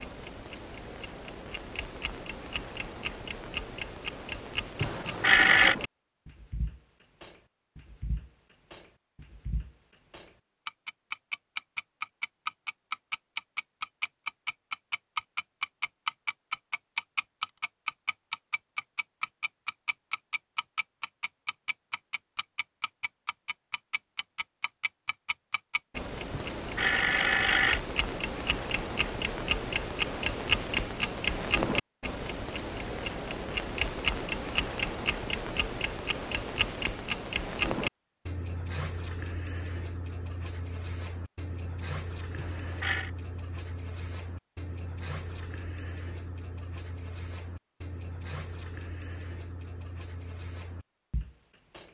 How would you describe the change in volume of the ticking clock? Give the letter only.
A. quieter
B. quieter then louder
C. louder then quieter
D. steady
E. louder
C.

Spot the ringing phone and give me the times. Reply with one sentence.
The ringing phone can be heard from 4.8 to 5.8 s, from 26.3 to 27.8 s and from 42.4 to 43.1 s.